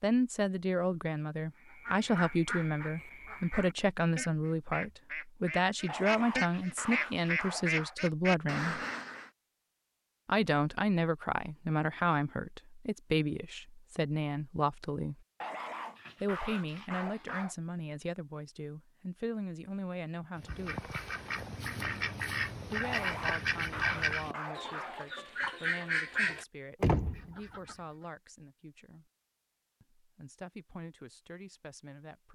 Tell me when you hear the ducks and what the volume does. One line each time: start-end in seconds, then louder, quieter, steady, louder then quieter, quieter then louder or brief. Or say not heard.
1.6-9.3 louder
20.4-27.8 louder.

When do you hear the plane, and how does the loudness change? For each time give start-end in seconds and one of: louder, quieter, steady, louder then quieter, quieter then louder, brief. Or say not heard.
not heard.